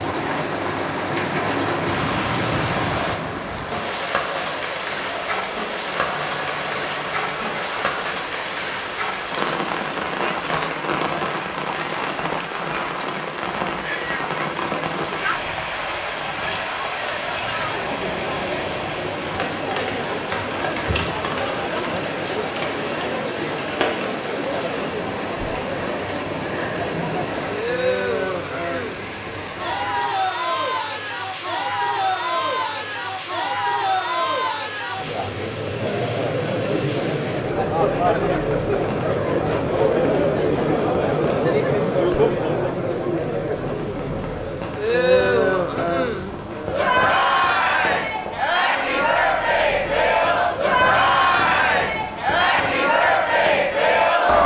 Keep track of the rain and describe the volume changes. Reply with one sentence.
The loudness of the rain goes down.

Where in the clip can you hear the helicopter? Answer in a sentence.
The helicopter can't be heard in this clip.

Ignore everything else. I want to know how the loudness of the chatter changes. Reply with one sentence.
The loudness of the chatter goes up.